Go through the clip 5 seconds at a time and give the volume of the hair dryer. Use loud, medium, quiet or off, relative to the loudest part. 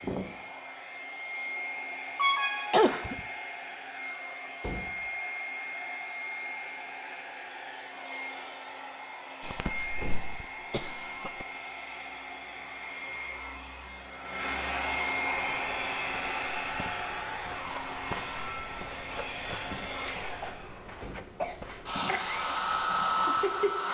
medium, medium, medium, loud, loud.